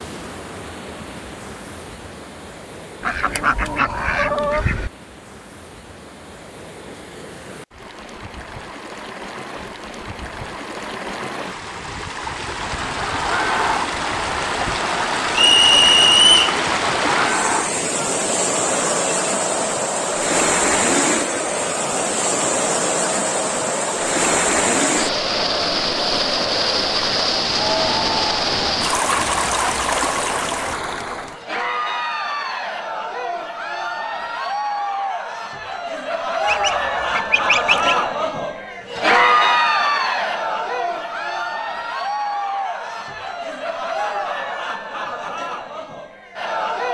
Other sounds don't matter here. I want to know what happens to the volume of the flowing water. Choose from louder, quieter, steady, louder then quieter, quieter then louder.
louder.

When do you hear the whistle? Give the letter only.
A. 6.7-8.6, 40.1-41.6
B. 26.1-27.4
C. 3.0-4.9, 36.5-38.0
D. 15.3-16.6
D.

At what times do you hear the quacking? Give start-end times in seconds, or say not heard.
3.0-4.9, 36.5-38.0.